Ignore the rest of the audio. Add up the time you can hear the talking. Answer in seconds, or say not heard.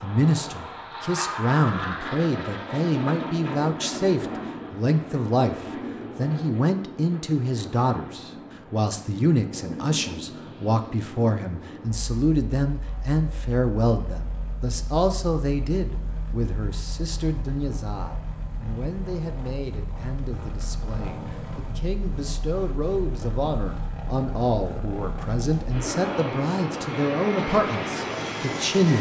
29 s.